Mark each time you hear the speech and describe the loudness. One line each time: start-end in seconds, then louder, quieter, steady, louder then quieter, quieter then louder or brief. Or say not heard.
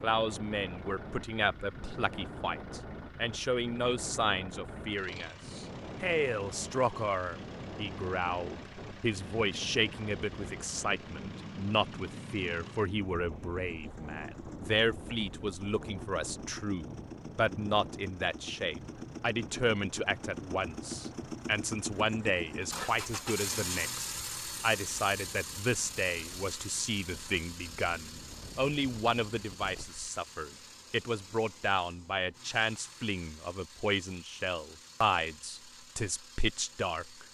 0.0-37.2 steady.